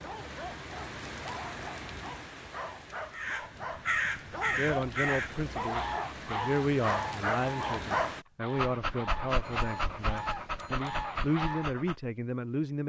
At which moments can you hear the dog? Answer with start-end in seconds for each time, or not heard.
0.0-11.9.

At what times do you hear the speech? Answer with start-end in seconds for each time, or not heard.
4.4-12.8.